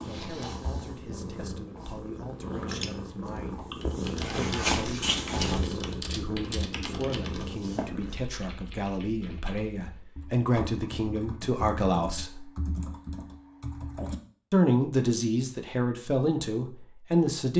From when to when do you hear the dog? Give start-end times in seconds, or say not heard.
not heard.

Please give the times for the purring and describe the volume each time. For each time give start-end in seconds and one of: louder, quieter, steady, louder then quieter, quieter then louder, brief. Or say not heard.
0.0-8.2 louder then quieter.